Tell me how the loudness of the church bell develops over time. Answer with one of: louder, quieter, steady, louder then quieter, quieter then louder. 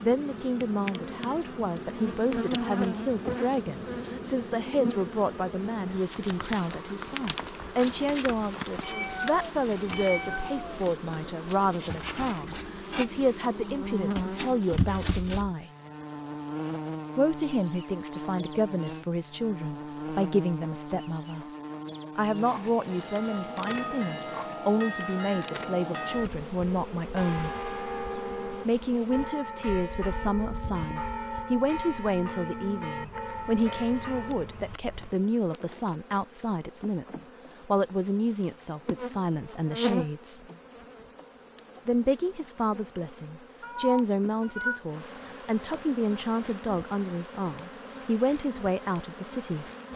steady.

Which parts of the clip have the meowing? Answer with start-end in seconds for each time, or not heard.
8.8-10.8, 43.6-44.8.